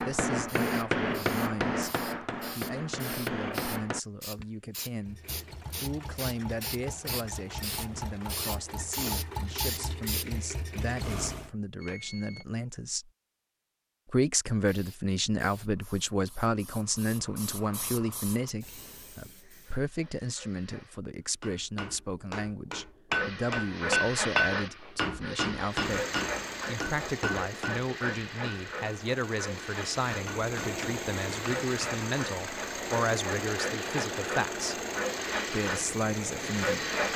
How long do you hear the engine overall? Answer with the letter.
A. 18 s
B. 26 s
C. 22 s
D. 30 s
A.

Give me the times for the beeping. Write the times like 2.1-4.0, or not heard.
11.8-12.4.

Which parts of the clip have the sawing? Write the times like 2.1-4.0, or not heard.
not heard.